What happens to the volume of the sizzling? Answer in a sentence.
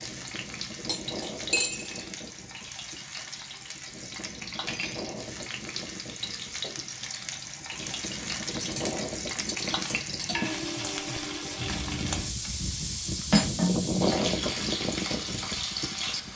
The loudness of the sizzling goes up.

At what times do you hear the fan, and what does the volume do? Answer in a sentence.
You can hear the fan from 0.0 to 16.3 s, getting louder.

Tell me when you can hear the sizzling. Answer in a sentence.
The sizzling can be heard from 0.0 to 16.3 s.